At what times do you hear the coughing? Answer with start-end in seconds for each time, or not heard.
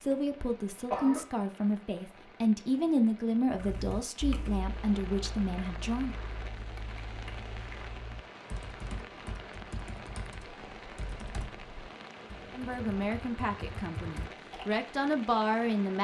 0.1-1.2.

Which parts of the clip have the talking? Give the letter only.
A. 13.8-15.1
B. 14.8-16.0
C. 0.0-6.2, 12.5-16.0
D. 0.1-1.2
C.